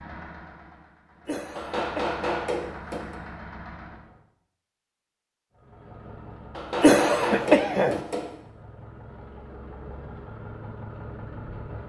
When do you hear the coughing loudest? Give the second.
7 s.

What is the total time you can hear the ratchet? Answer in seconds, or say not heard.
not heard.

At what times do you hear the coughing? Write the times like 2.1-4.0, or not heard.
1.2-2.2, 6.8-8.0.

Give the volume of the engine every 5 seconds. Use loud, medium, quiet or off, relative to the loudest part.
loud, medium, loud.